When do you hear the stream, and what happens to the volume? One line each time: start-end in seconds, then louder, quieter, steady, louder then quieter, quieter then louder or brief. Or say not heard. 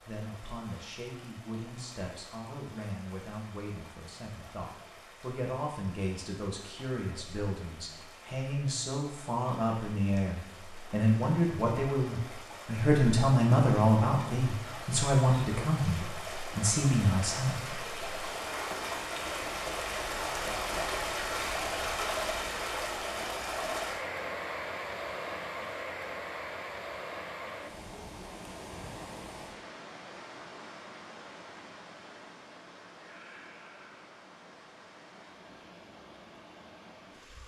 0.0-37.4 louder then quieter.